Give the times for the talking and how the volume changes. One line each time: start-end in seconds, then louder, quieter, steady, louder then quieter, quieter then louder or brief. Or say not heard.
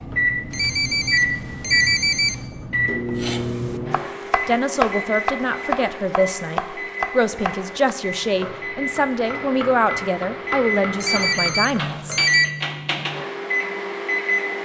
4.3-12.2 steady.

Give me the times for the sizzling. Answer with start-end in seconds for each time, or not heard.
not heard.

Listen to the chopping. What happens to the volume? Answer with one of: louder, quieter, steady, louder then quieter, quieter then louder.
quieter.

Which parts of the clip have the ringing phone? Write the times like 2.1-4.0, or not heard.
0.5-2.5, 11.0-12.5.